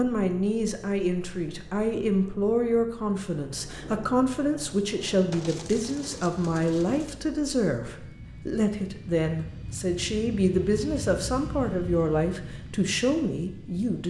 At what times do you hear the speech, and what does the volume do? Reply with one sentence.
The speech can be heard from 0.0 to 14.0 s, at a steady volume.